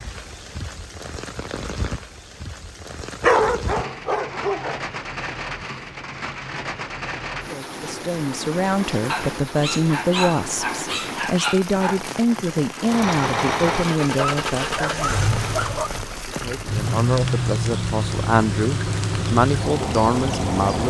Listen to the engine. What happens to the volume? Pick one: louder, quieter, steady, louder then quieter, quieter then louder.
steady.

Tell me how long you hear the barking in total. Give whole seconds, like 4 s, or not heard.
6 s.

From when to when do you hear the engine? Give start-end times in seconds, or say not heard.
12.8-20.8.